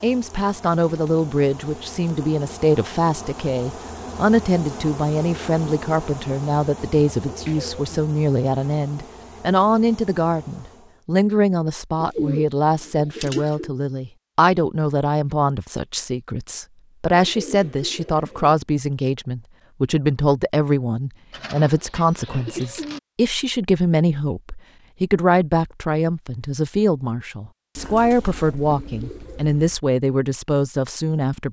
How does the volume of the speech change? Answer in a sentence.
The loudness of the speech stays about the same.